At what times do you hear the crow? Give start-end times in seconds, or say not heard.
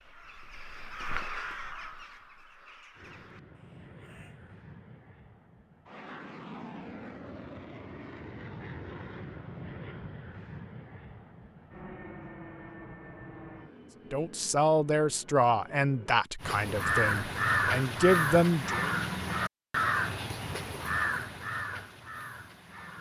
0.0-4.5, 16.4-22.9.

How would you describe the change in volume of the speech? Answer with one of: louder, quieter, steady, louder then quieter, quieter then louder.
quieter then louder.